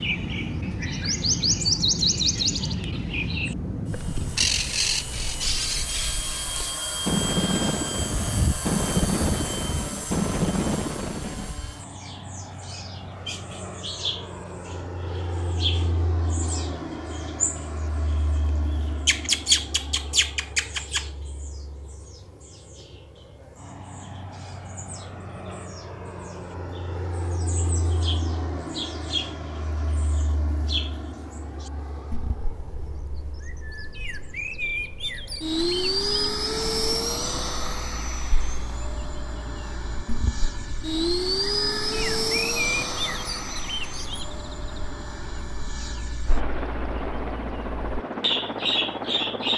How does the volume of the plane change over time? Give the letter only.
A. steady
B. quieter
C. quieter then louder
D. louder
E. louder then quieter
C.